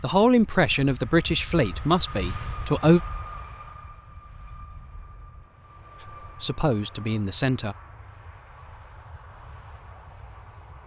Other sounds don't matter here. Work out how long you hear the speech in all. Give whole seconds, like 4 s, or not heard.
4 s.